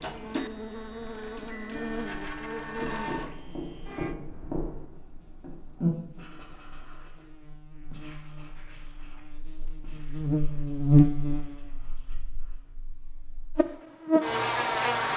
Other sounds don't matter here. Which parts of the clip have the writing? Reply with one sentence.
The writing can be heard from 2.8 to 7.2 s and from 7.9 to 12.8 s.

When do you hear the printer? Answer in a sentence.
The printer can be heard from 0.0 to 4.2 s.